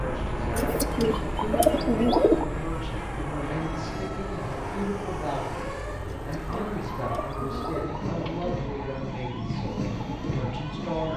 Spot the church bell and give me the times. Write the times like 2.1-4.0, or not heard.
not heard.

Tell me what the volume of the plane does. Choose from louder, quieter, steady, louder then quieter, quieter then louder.
quieter.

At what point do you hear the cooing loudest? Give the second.
2 s.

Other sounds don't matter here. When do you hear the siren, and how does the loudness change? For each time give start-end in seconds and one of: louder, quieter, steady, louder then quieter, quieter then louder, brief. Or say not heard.
0.0-11.1 louder.